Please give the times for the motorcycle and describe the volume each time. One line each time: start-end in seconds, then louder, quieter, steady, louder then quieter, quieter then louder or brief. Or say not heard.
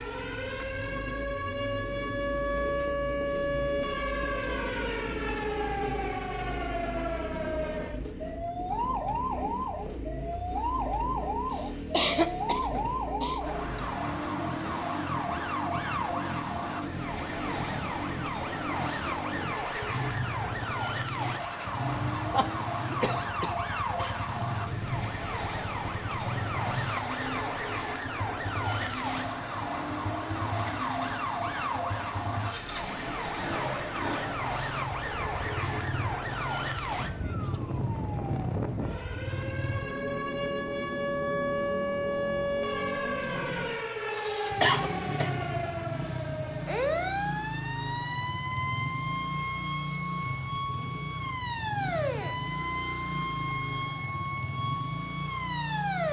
0.0-56.0 steady.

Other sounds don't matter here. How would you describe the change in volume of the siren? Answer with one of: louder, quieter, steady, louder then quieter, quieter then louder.
steady.